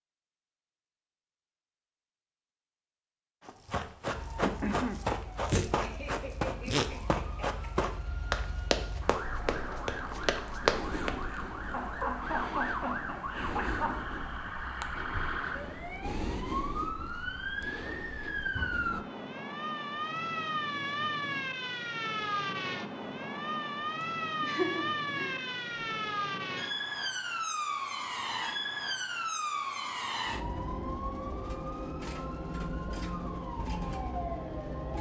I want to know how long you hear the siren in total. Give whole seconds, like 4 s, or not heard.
31 s.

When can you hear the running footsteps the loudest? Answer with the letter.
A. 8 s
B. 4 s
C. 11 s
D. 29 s
C.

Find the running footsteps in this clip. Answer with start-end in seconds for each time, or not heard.
3.5-11.2.